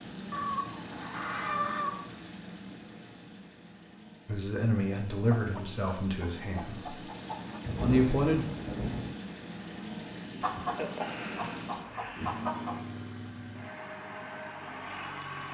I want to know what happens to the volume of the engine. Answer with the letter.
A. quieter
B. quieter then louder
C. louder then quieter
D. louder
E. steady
B.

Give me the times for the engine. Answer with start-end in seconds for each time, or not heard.
0.0-15.4.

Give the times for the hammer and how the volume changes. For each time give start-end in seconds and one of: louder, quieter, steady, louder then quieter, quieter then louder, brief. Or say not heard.
not heard.